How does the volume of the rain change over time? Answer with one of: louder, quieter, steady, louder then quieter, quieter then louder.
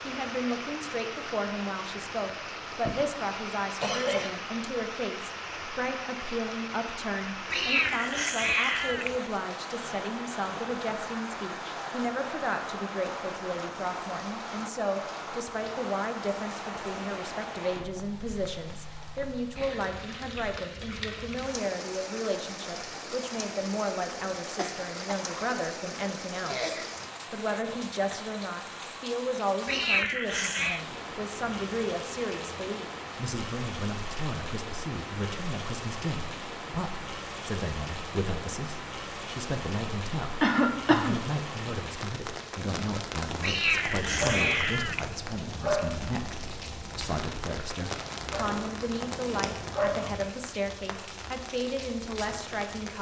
steady.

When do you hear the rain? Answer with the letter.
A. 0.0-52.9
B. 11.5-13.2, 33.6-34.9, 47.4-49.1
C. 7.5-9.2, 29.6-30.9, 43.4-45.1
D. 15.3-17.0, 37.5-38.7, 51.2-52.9
A.